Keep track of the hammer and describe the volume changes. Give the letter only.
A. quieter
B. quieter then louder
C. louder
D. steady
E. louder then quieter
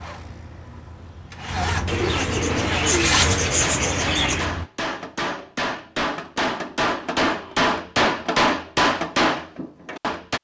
C.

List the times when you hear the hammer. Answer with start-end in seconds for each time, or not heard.
2.7-10.3.